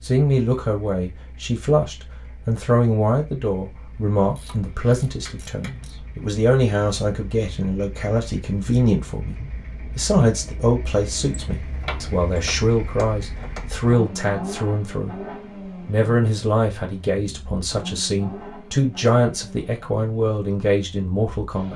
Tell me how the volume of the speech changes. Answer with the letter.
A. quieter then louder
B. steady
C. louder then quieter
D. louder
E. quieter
B.